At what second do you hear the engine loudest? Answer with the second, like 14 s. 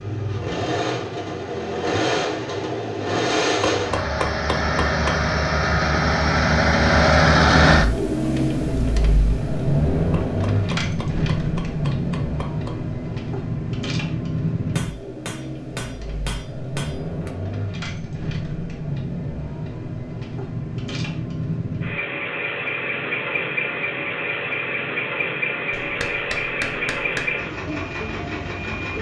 7 s.